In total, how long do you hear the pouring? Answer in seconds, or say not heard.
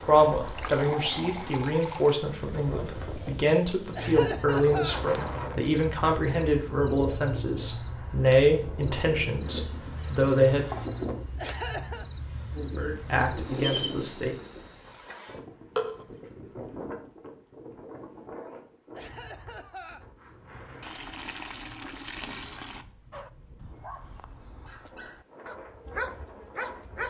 4 s.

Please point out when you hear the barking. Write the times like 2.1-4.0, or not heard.
23.1-27.0.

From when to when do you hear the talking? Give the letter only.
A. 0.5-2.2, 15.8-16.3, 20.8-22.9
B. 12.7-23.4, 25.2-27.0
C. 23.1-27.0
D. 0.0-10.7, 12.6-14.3
D.